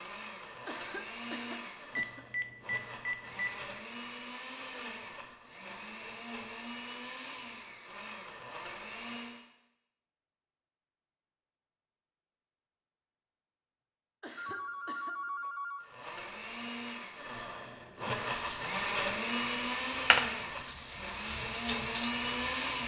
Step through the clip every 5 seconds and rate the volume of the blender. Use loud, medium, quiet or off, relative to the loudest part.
medium, medium, off, loud, loud.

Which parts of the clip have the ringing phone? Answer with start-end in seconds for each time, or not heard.
1.9-3.8, 14.3-15.9.